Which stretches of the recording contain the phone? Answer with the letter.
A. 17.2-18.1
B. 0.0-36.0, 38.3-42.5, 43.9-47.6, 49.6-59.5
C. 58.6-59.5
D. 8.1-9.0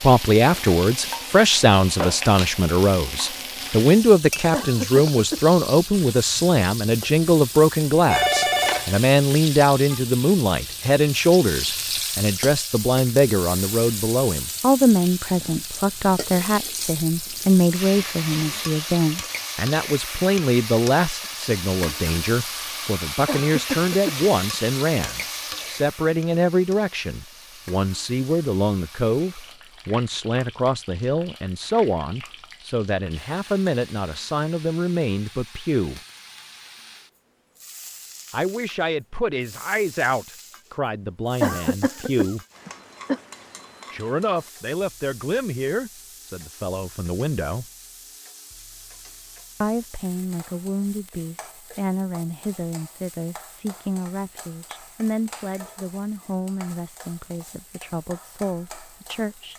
D.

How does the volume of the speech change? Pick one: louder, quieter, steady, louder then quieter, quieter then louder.
quieter.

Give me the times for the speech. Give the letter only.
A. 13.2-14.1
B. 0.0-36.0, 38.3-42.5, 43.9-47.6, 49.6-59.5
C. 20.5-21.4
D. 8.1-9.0
B.